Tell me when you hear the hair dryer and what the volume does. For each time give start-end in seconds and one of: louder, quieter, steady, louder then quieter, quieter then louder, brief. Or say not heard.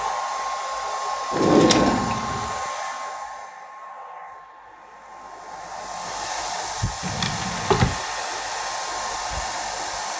0.0-10.1 quieter then louder.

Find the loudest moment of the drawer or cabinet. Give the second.
2 s.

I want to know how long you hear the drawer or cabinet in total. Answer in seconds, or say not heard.
2 s.